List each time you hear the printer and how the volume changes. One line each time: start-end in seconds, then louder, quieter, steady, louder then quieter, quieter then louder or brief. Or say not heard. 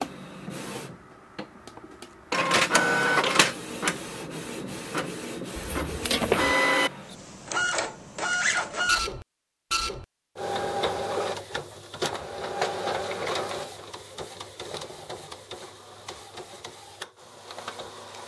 0.0-18.2 quieter.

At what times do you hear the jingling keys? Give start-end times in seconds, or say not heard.
5.5-6.5.